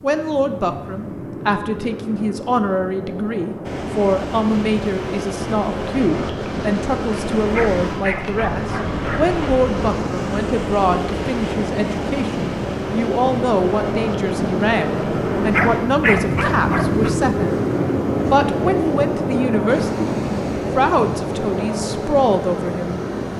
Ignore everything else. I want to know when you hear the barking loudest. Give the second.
16 s.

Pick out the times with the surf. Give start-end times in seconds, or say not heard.
3.6-23.3.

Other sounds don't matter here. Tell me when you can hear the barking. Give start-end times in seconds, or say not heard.
7.5-9.3, 15.5-17.1.